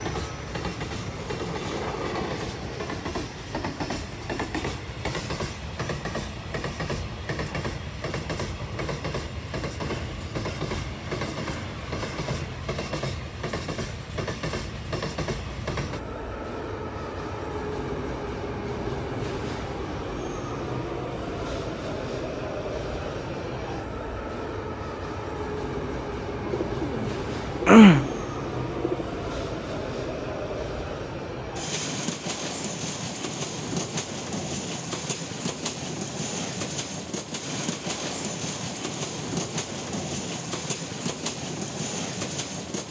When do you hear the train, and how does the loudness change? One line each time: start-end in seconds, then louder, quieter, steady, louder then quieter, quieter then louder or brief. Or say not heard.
0.0-42.8 steady.